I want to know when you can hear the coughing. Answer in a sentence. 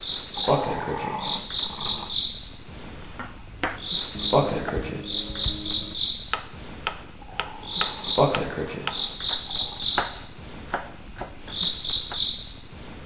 The coughing can't be heard in this clip.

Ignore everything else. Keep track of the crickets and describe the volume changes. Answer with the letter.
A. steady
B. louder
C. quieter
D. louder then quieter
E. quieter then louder
A.